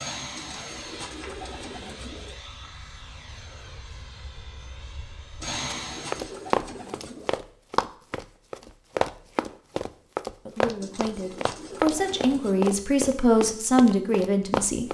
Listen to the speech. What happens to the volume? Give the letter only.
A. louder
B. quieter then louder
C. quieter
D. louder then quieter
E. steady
A.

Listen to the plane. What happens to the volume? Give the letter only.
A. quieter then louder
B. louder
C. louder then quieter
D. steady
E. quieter
A.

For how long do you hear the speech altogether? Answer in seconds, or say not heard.
4 s.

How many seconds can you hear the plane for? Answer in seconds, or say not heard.
6 s.